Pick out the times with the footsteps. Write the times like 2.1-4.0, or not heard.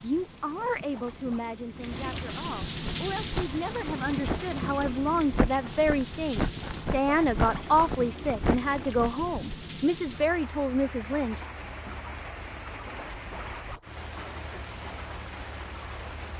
2.9-9.5.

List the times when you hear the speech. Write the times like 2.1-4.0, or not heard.
0.0-11.4.